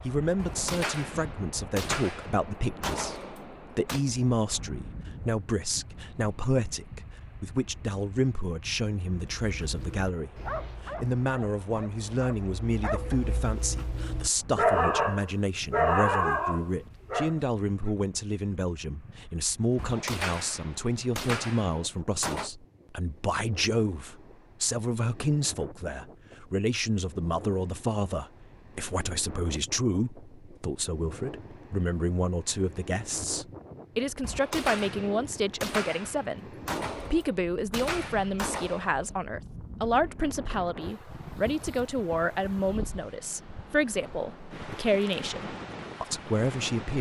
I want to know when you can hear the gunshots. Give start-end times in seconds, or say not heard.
0.3-4.0, 19.8-22.5, 34.2-39.0.